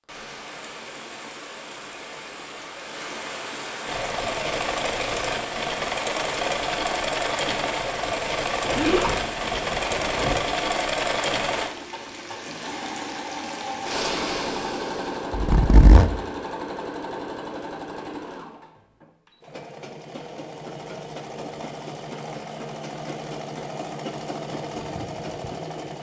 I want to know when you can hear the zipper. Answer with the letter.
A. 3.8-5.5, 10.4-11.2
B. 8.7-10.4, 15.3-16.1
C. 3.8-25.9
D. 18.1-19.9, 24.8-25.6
B.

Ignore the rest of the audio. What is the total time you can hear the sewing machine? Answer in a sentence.
The sewing machine can be heard for 22 seconds in total.